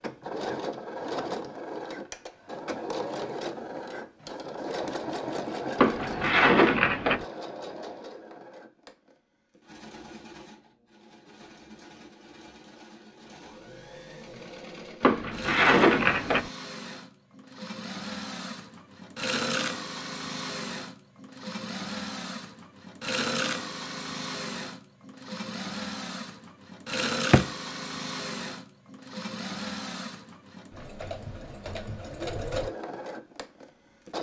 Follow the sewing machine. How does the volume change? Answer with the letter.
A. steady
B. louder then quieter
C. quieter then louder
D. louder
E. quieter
C.